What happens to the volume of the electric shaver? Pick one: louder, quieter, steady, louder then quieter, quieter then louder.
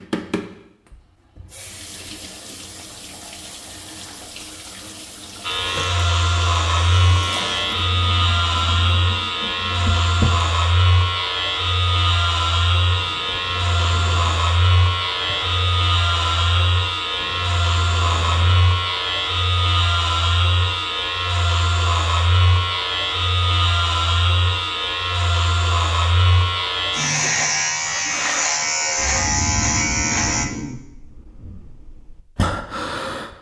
steady.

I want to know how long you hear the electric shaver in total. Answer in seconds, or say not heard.
25 s.